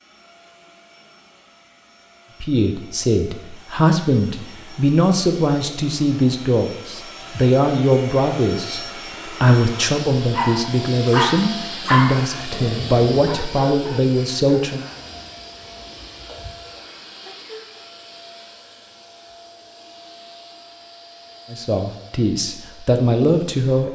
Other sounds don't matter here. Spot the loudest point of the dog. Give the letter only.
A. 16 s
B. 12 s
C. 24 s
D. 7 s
B.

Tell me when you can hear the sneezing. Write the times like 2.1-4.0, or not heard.
17.2-17.7.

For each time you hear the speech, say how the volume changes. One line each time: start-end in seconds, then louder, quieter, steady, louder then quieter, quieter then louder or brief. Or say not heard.
2.4-14.8 steady
21.5-23.9 brief.